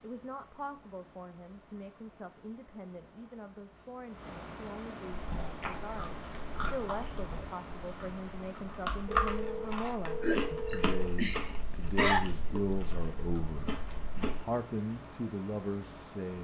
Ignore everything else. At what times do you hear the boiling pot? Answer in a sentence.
You can't hear the boiling pot here.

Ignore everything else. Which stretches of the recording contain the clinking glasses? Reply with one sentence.
You can't hear the clinking glasses here.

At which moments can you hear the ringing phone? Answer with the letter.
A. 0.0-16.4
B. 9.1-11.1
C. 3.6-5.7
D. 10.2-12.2
B.